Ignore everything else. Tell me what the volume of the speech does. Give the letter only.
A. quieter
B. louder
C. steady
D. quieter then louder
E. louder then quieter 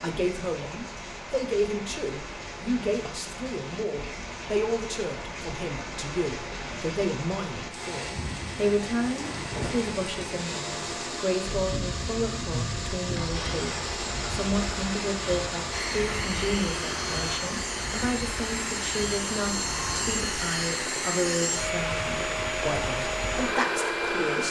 C.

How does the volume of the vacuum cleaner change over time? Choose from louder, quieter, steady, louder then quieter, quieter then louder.
louder.